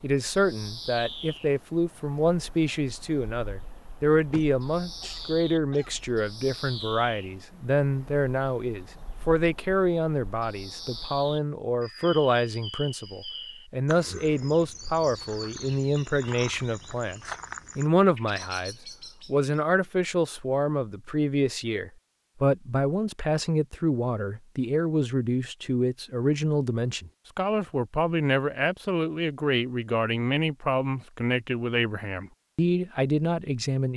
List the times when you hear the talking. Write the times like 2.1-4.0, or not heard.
0.0-33.9.